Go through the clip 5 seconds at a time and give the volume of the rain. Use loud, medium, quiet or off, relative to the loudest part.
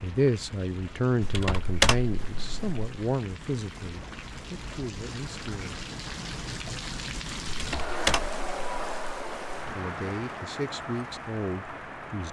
medium, loud, loud.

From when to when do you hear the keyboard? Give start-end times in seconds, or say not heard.
1.2-2.8, 7.5-9.7.